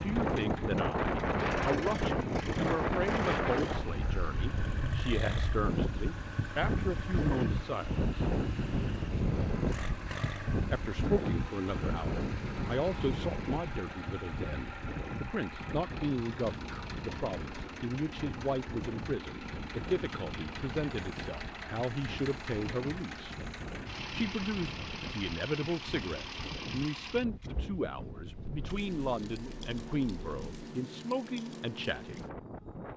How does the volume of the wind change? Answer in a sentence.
The volume of the wind goes down.